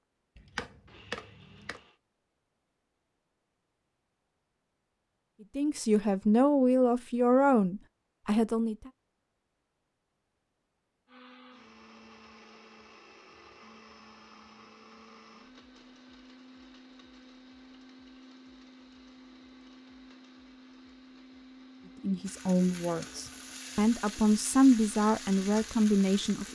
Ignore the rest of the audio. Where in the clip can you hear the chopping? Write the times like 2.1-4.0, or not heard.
0.3-1.8.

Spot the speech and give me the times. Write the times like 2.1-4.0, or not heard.
5.5-8.9, 22.0-26.5.